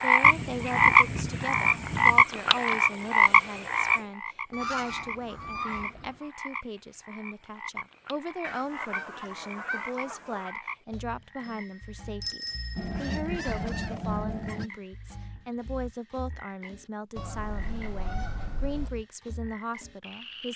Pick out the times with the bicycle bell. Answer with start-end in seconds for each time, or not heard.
11.4-13.0.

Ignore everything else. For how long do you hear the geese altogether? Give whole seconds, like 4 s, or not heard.
10 s.